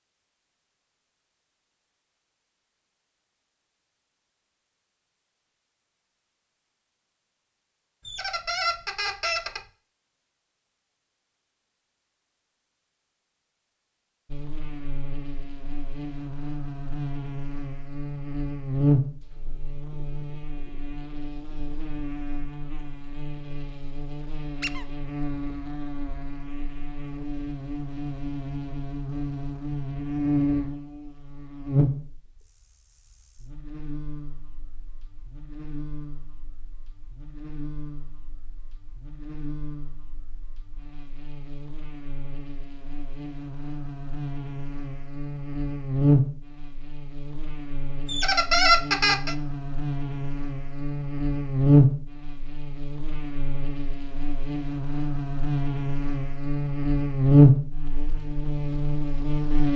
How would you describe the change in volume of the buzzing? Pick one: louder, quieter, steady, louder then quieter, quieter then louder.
quieter then louder.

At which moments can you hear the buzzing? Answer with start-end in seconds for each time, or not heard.
14.3-59.7.